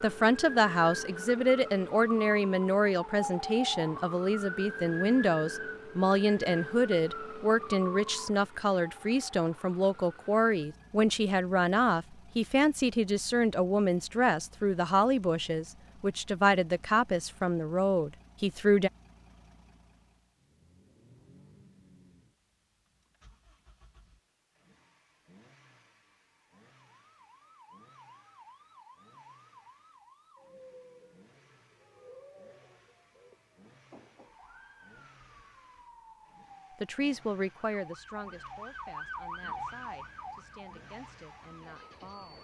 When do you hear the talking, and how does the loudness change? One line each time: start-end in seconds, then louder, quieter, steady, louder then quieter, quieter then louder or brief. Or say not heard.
0.0-18.9 steady
36.8-42.3 quieter.